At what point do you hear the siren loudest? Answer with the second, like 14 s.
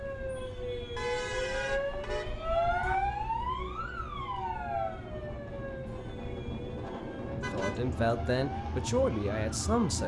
3 s.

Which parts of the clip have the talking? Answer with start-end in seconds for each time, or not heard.
7.5-10.0.